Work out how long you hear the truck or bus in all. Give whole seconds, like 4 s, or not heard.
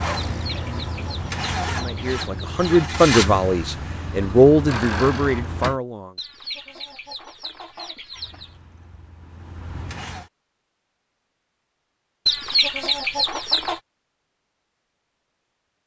8 s.